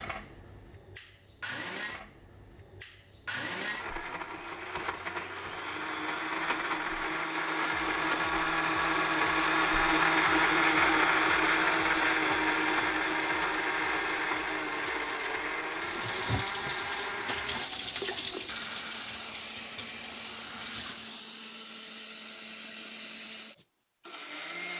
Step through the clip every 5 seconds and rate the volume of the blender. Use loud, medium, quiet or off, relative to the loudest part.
quiet, loud, loud, medium, quiet.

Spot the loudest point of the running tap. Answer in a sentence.
The volume of the running tap peaks at 18 seconds.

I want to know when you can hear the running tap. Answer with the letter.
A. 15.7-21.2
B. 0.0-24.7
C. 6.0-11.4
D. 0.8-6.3
A.